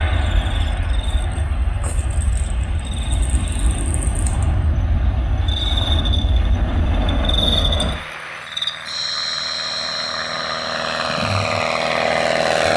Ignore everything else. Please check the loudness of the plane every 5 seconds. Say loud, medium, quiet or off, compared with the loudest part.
medium, medium, loud.